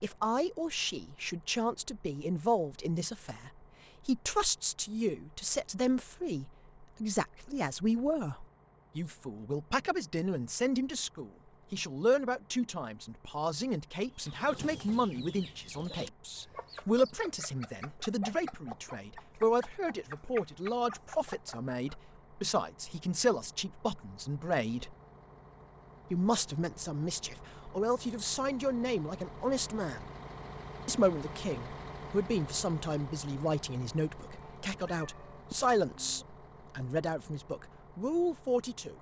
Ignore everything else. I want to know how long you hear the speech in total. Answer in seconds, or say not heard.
37 s.